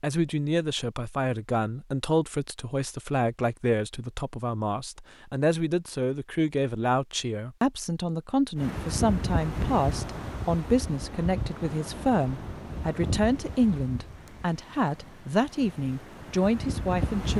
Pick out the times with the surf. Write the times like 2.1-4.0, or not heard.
8.6-17.3.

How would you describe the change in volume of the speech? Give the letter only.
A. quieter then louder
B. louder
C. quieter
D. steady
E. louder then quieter
D.